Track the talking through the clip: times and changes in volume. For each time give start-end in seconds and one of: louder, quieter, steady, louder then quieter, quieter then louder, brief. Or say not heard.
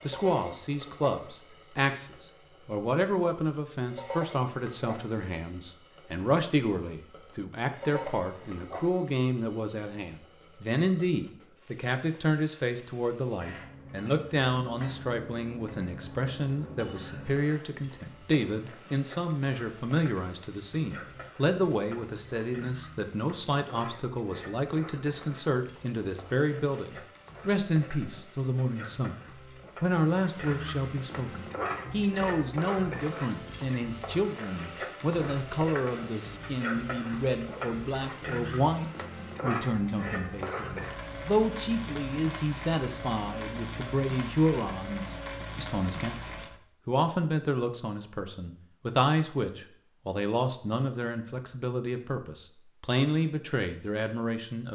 0.0-29.1 steady
29.8-54.7 steady.